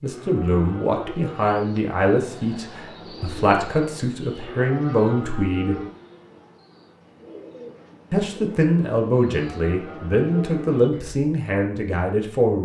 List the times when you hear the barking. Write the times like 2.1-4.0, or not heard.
not heard.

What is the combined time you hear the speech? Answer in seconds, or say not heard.
10 s.